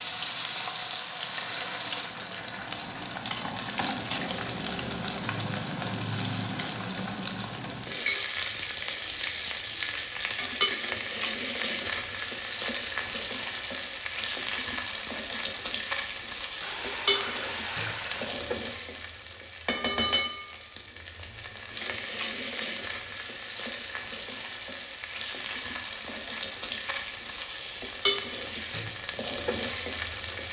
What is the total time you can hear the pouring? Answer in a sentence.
The pouring can be heard for 4 seconds in total.